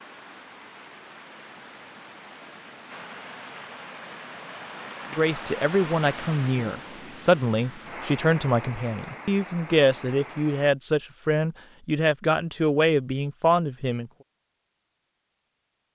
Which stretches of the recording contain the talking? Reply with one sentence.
You can hear the talking from 5.2 to 14.1 s.